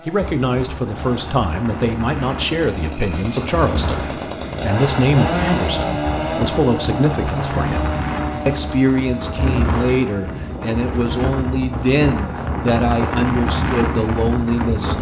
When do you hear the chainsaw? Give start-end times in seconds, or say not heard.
0.0-14.8.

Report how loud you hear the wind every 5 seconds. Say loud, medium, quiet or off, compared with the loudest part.
medium, loud, loud.